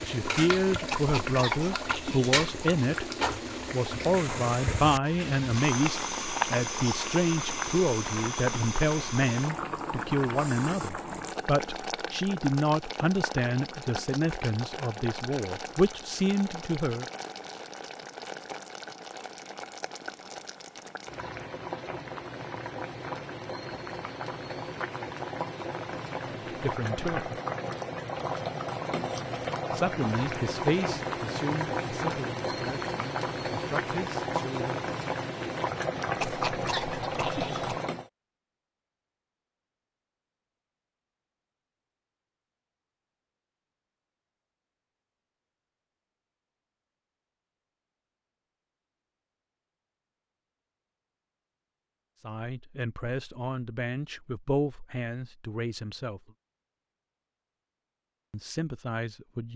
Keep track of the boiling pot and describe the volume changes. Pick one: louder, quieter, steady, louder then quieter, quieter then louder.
quieter then louder.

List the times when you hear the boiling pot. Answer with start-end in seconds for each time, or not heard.
0.0-38.1.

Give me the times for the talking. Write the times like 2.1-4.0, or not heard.
0.1-3.1, 3.7-17.1, 26.2-27.4, 29.7-34.9, 52.2-56.3, 58.3-59.5.